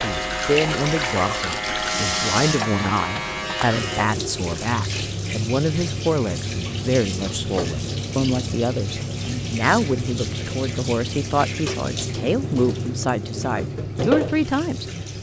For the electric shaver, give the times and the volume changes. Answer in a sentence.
The electric shaver can be heard from 0.0 to 4.1 s, at a steady volume.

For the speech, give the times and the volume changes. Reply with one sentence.
The speech can be heard from 0.0 to 14.8 s, at a steady volume.